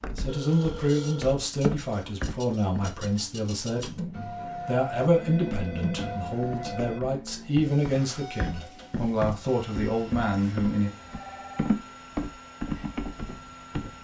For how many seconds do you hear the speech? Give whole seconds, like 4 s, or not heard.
11 s.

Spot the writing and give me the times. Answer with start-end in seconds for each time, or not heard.
not heard.